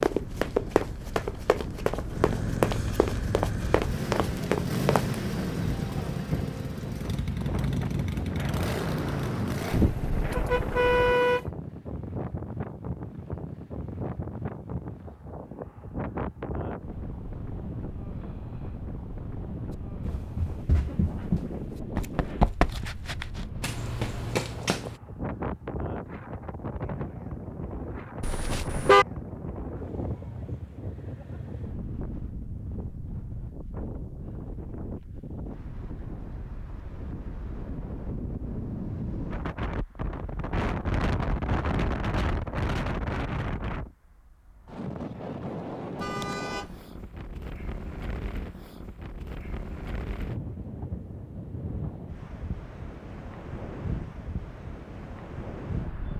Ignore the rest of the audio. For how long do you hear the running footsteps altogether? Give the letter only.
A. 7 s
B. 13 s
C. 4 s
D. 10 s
D.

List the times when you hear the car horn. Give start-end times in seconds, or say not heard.
9.7-11.4, 28.2-29.1, 46.0-46.8.